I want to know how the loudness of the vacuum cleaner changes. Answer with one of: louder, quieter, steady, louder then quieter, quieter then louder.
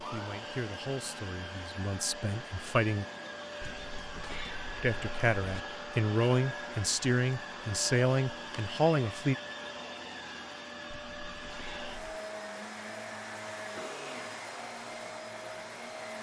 steady.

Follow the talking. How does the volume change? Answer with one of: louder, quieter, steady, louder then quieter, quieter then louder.
louder.